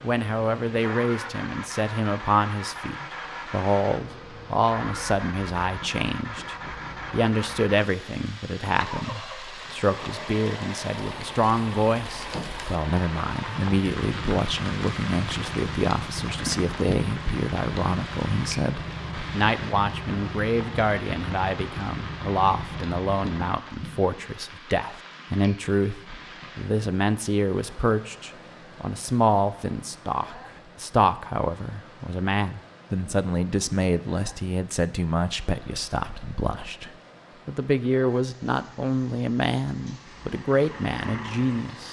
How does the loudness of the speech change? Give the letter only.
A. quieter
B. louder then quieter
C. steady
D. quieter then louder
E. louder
C.